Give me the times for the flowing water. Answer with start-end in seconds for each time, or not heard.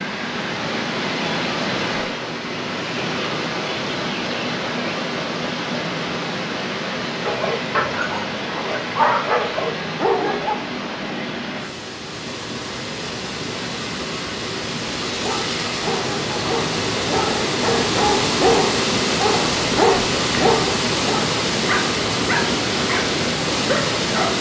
0.0-24.3.